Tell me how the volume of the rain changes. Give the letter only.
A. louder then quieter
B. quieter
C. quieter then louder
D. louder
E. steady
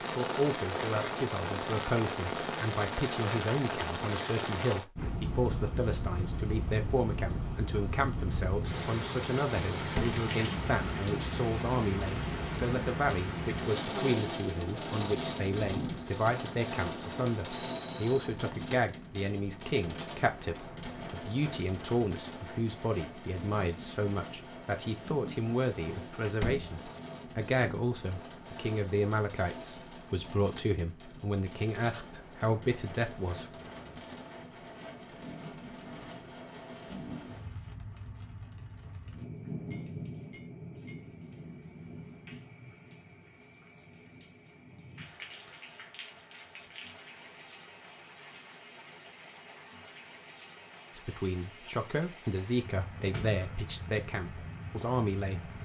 B.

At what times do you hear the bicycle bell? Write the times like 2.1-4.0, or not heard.
17.4-18.3, 39.5-41.2.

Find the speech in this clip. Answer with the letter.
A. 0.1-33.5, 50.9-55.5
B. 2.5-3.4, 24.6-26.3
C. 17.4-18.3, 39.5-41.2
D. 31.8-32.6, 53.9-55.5
A.